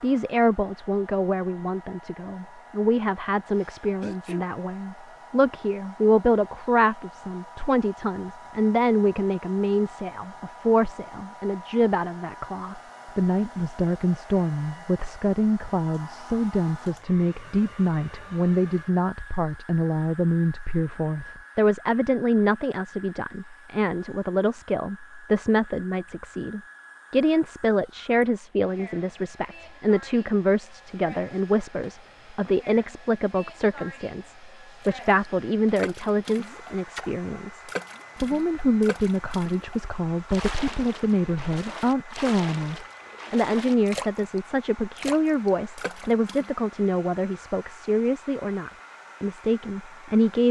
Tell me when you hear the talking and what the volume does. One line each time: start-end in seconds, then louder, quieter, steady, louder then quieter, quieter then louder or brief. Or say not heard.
0.0-50.4 steady.